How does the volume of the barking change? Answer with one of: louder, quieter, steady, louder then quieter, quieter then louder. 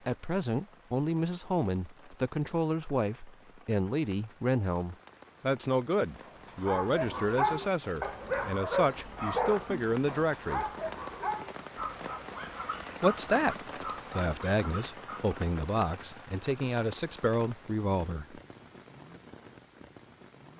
quieter.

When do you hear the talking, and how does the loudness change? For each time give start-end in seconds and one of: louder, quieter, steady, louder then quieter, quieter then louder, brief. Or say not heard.
0.1-10.7 steady
13.0-18.4 steady.